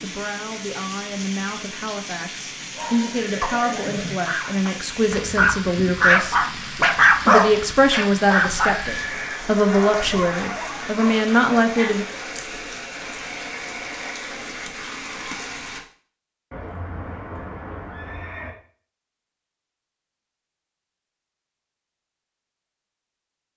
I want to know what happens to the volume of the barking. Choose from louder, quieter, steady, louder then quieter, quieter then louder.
louder then quieter.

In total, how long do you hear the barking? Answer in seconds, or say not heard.
9 s.